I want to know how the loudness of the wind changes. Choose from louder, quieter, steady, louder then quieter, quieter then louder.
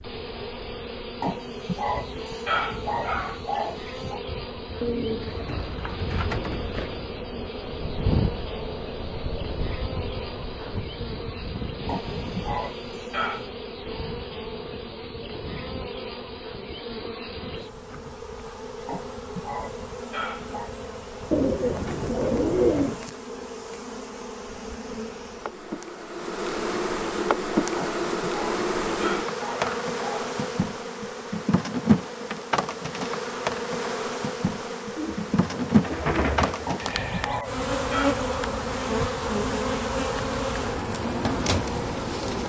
louder then quieter.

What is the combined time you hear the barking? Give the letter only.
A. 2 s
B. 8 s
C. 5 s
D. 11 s
D.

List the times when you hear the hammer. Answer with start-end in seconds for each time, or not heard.
not heard.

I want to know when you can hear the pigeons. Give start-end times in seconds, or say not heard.
4.8-7.0, 21.3-23.0, 35.0-36.8.